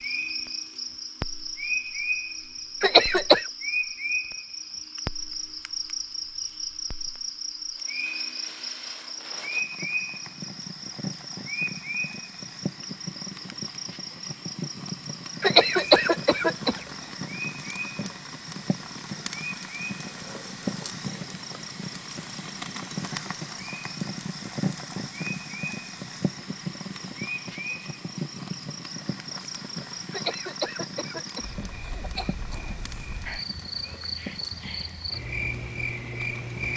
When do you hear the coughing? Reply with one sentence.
You can hear the coughing from 2.8 to 3.5 s, from 15.4 to 16.8 s and from 30.1 to 32.4 s.